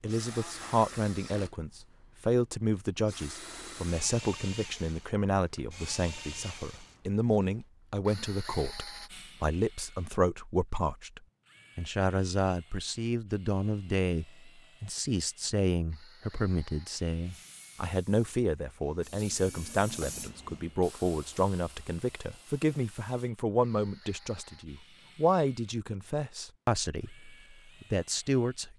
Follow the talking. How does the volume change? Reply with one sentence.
The volume of the talking stays about the same.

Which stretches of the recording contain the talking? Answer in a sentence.
You can hear the talking from 0.0 to 28.7 s.